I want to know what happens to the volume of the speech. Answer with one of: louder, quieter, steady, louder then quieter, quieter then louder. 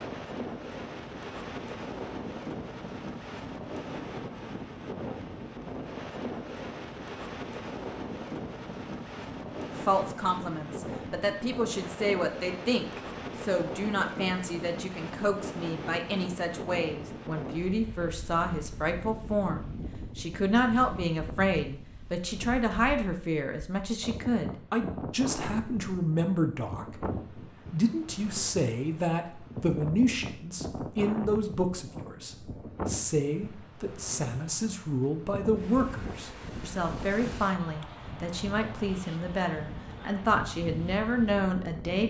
steady.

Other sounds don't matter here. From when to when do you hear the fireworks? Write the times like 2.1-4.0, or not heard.
not heard.